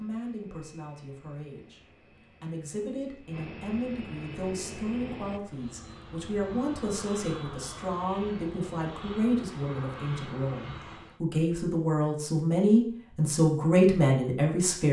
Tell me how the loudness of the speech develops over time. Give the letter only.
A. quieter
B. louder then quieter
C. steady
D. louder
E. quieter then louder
D.